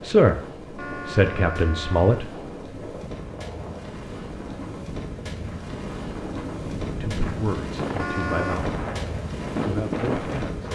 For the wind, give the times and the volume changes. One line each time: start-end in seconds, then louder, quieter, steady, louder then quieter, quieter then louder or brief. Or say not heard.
0.0-10.6 louder.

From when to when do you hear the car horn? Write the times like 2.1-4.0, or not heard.
0.8-2.2, 8.0-8.6.